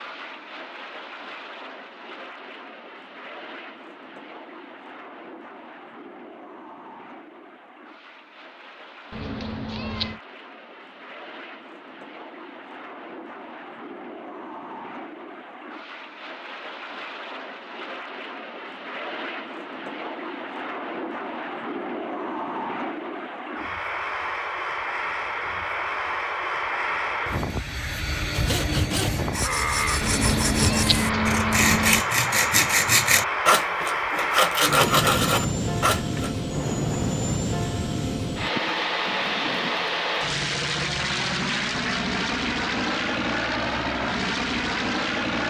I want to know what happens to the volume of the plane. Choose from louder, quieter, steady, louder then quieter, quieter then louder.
louder.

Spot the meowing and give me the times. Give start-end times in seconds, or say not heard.
9.1-10.2, 30.0-32.0.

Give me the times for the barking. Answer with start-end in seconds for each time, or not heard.
not heard.